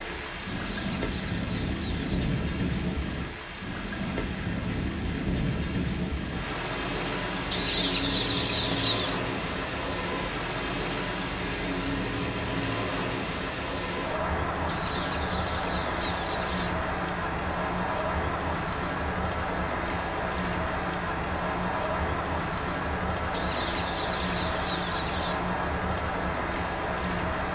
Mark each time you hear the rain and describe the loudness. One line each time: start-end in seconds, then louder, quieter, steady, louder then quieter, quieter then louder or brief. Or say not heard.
0.0-27.4 steady.